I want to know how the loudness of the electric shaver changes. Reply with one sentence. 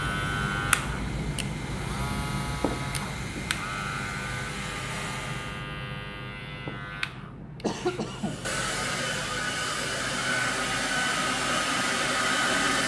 The loudness of the electric shaver goes down.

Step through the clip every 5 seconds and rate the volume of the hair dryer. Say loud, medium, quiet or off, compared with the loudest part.
quiet, medium, loud.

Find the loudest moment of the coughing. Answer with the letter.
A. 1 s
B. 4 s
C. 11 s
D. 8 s
D.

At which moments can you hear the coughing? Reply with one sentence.
You can hear the coughing from 2.6 to 3.3 s and from 6.7 to 8.4 s.